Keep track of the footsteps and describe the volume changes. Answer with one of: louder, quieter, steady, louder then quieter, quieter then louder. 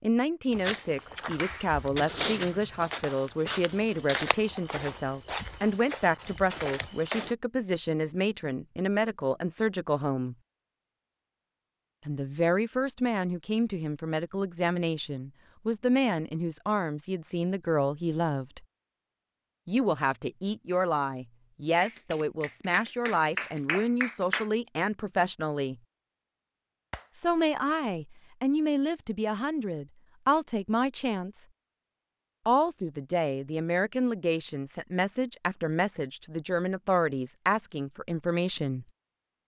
louder then quieter.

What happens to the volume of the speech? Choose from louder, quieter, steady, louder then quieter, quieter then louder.
steady.